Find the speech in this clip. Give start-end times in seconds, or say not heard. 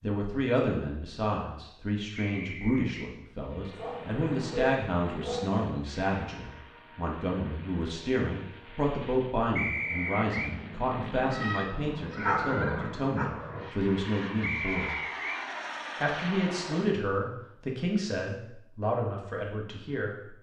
0.0-14.9, 16.0-20.3.